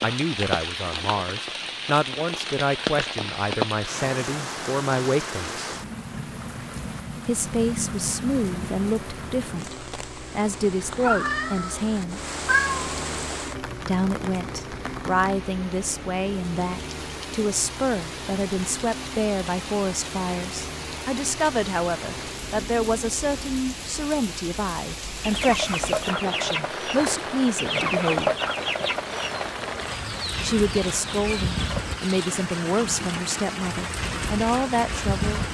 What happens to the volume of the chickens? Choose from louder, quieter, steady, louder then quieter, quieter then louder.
quieter.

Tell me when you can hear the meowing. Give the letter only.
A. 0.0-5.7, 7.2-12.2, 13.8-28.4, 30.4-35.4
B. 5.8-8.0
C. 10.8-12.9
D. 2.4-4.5
C.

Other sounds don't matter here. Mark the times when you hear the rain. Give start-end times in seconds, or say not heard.
0.0-35.4.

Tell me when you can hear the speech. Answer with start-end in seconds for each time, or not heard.
0.0-5.7, 7.2-12.2, 13.8-28.4, 30.4-35.4.